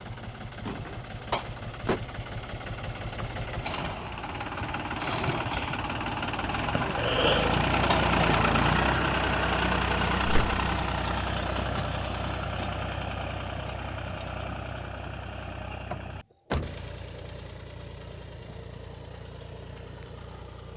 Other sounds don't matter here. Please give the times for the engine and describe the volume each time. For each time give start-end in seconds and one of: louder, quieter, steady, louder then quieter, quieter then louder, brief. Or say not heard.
0.0-20.7 louder then quieter.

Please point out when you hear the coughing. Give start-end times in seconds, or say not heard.
6.7-7.6.